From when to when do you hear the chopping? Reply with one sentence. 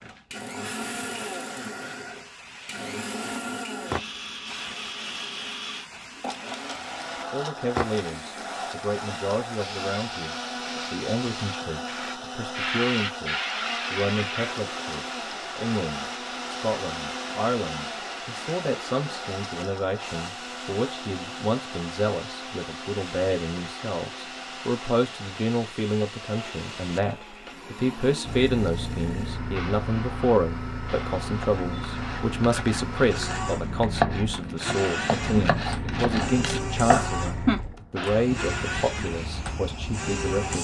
The chopping can be heard from 31.4 to 37.6 s.